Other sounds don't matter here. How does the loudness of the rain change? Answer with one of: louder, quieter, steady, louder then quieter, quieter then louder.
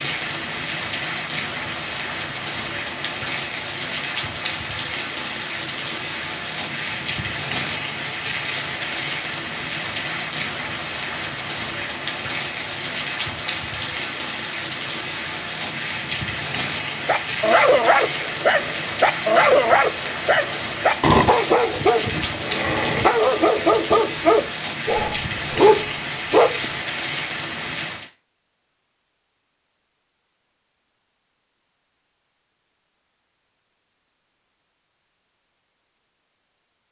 steady.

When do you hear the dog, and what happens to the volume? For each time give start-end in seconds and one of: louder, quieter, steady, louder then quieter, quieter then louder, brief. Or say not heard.
17.1-26.6 steady.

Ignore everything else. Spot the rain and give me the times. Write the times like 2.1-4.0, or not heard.
0.0-28.1.